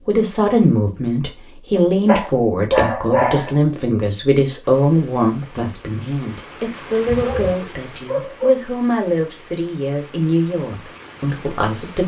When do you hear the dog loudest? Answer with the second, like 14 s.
3 s.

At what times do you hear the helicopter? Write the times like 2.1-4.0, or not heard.
not heard.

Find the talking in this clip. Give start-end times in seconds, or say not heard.
0.1-12.0.